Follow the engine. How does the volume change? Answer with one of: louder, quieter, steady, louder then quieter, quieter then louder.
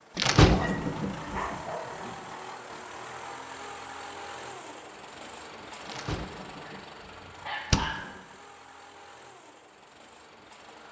quieter.